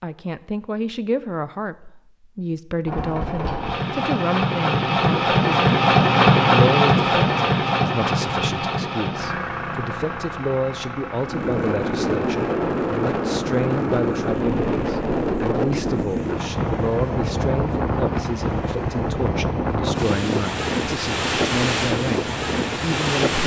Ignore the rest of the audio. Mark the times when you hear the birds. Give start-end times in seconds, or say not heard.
not heard.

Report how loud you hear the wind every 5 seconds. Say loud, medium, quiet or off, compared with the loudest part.
off, off, loud, loud, loud.